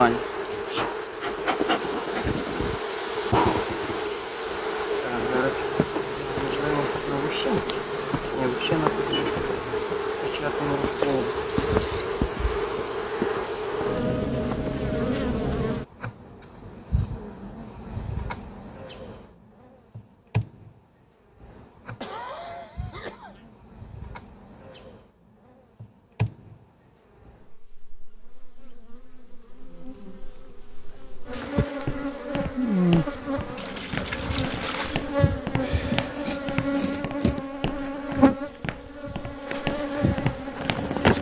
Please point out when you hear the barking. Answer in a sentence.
You can't hear the barking here.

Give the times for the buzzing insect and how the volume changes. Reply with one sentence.
The buzzing insect can be heard from 0.0 to 41.1 s, getting quieter then louder.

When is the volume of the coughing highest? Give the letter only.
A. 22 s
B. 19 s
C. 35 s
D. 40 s
A.